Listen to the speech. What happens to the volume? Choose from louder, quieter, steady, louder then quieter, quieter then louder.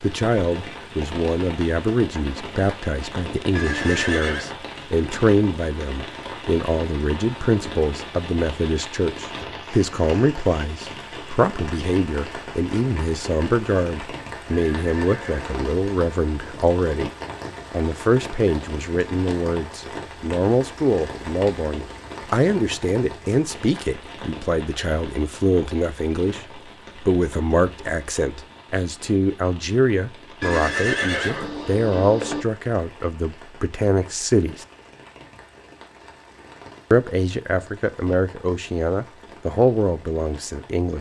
steady.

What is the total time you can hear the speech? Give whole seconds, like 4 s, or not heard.
38 s.